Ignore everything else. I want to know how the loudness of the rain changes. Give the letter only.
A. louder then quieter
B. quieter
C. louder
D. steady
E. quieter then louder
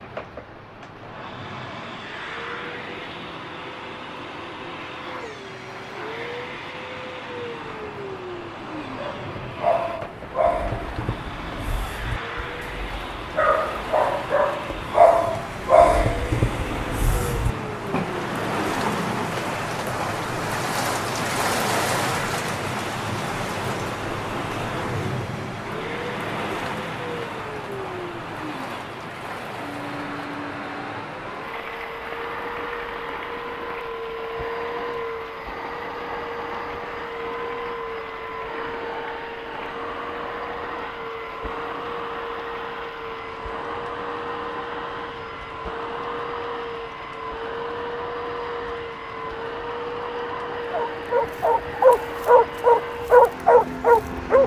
A.